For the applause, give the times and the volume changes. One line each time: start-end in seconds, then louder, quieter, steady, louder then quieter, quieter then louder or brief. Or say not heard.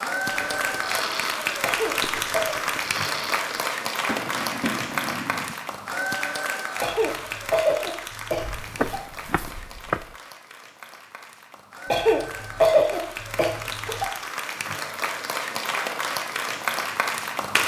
0.0-17.6 quieter then louder.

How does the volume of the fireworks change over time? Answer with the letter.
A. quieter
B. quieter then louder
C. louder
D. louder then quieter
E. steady
B.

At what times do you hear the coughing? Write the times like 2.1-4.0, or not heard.
1.6-2.5, 6.8-9.0, 11.9-14.1.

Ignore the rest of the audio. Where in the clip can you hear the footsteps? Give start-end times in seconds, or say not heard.
8.3-10.2.